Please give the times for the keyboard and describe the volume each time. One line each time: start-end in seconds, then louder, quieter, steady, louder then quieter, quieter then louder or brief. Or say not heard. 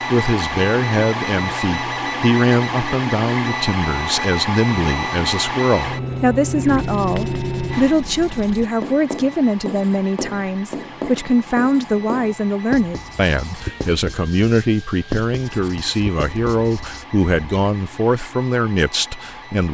not heard.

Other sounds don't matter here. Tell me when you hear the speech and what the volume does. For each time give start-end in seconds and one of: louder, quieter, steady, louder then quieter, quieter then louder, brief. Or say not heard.
0.1-19.6 steady.